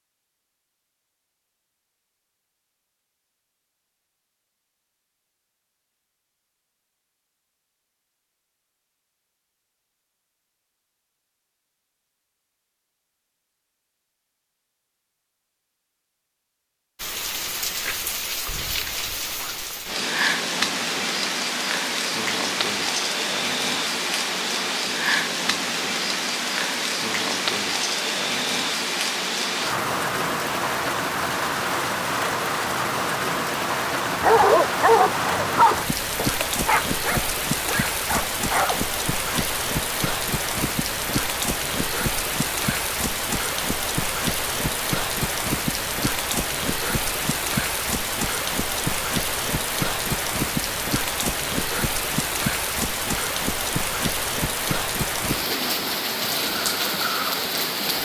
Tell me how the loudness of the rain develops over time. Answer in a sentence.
The loudness of the rain stays about the same.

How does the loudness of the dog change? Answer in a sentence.
The loudness of the dog goes down.